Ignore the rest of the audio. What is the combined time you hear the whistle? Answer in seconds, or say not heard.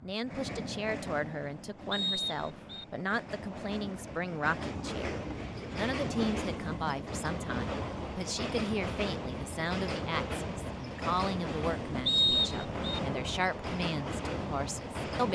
2 s.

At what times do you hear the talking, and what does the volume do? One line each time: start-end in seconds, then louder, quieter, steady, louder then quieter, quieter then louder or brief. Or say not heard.
0.0-15.3 steady.